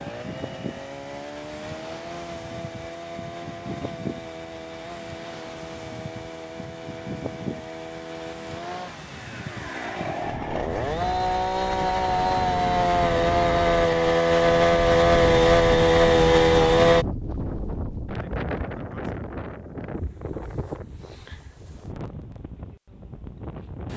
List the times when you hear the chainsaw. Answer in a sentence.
The chainsaw can be heard from 0.0 to 17.1 s.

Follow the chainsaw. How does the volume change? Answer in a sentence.
The loudness of the chainsaw goes up.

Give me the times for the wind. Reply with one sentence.
You can hear the wind from 0.0 to 23.9 s.